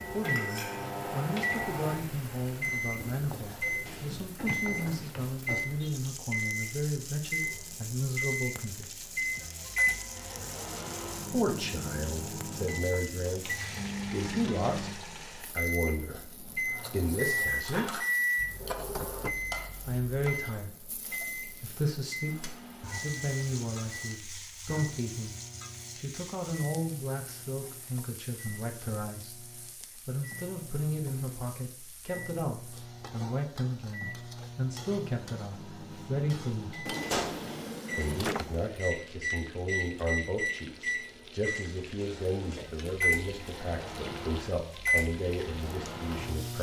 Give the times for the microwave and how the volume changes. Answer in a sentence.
The microwave can be heard from 0.0 to 46.5 s, getting quieter then louder.